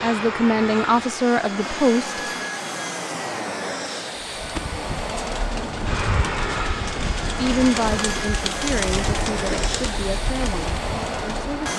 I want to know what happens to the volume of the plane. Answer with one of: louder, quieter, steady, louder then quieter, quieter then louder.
steady.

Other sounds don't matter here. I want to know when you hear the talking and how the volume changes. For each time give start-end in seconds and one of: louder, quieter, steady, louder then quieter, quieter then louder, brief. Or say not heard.
0.0-2.2 brief
7.4-11.7 quieter.